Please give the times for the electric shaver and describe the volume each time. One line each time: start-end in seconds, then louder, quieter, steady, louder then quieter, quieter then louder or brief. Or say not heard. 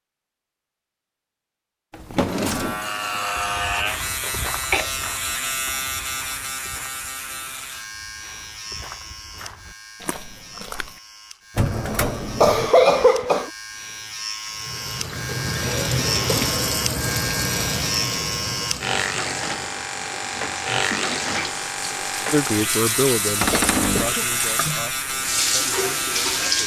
2.4-26.6 quieter then louder.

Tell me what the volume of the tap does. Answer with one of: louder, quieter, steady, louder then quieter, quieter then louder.
quieter then louder.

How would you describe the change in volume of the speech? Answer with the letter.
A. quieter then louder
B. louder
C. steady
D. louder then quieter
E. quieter
E.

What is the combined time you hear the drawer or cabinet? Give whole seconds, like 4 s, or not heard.
3 s.